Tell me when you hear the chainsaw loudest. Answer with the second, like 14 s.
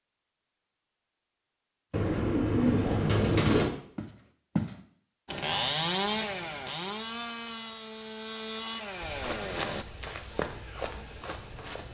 6 s.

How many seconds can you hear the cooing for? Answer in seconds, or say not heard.
2 s.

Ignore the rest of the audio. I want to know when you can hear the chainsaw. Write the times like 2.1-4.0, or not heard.
5.2-9.8.